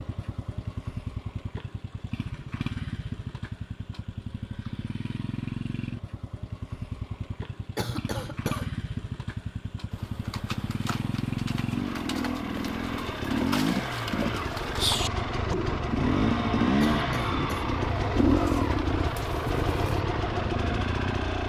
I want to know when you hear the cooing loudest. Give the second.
15 s.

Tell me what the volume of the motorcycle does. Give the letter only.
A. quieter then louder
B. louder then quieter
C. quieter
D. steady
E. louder
E.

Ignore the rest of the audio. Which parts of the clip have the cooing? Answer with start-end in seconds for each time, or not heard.
9.9-20.1.